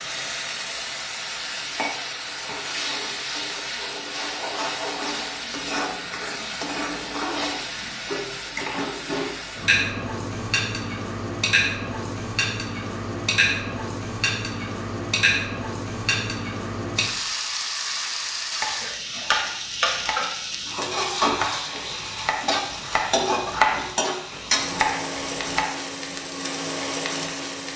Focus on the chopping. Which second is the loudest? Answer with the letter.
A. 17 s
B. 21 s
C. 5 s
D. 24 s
D.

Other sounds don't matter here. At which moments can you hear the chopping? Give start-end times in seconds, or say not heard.
18.6-25.7.